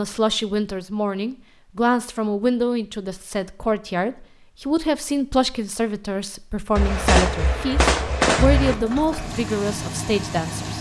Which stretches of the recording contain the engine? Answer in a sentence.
You can hear the engine from 8.6 to 10.7 s.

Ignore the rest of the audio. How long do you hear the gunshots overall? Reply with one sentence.
You can hear the gunshots for 2 seconds altogether.